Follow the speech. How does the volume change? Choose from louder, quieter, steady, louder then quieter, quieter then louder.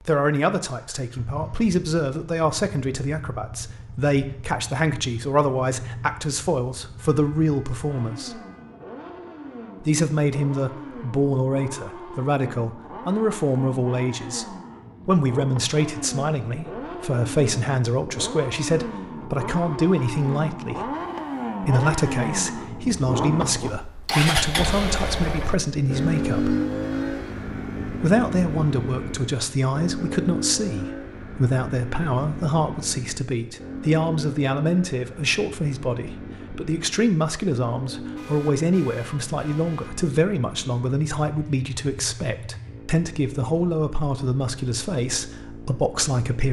steady.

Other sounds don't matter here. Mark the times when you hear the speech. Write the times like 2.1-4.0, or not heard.
0.1-8.4, 9.8-14.4, 15.1-20.9, 21.6-26.6, 27.9-46.4.